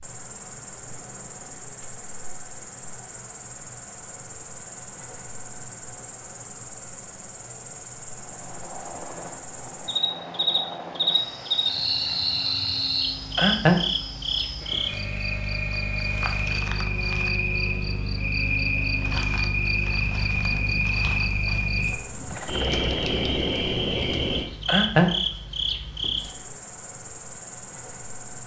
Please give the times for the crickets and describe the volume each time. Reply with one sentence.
The crickets can be heard from 0.0 to 28.4 s, getting louder.